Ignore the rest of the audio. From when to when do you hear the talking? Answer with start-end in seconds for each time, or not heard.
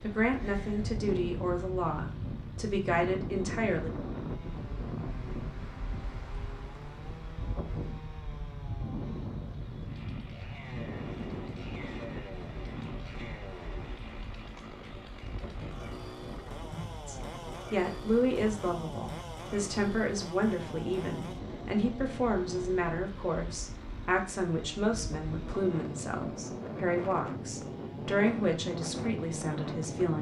0.0-3.9, 17.1-30.1.